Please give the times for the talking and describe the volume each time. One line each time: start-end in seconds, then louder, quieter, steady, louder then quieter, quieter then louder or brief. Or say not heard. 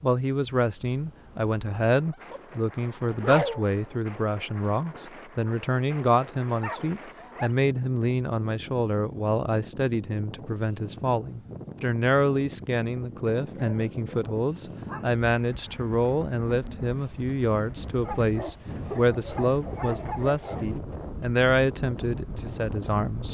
0.0-23.2 steady.